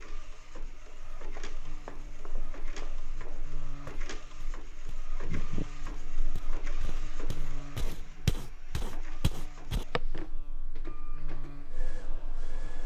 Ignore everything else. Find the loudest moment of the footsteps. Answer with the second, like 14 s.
8 s.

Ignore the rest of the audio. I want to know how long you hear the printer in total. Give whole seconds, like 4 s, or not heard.
13 s.